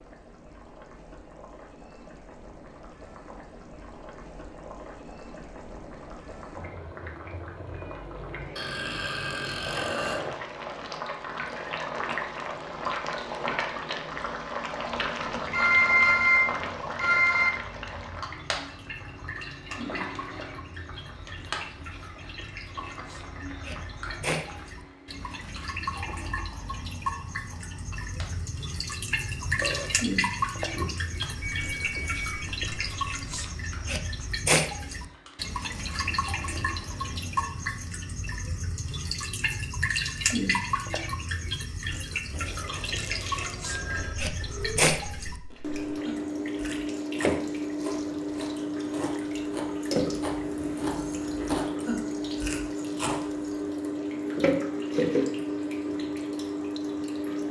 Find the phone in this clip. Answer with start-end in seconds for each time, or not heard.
15.5-17.5, 31.4-33.4, 42.3-44.1.